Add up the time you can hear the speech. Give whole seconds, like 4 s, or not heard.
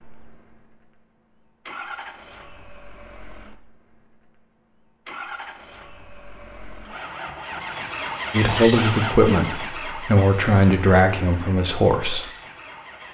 4 s.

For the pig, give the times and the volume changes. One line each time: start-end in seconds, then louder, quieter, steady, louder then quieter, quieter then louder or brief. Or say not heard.
not heard.